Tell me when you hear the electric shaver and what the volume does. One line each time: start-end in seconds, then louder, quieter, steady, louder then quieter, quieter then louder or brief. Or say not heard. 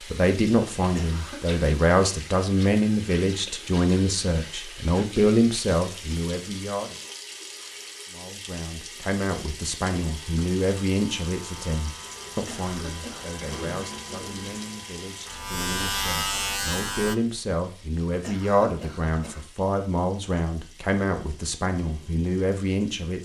10.1-17.1 louder.